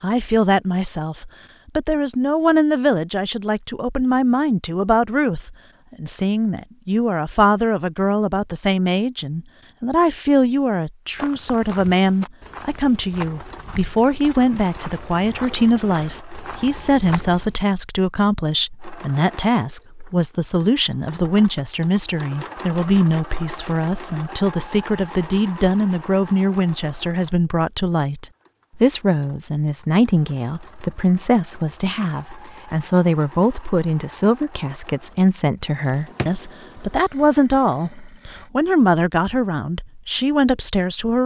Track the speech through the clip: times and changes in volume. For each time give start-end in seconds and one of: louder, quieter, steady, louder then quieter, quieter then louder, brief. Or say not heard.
0.0-41.2 steady.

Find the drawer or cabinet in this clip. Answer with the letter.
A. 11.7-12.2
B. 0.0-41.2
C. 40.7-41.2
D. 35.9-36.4
D.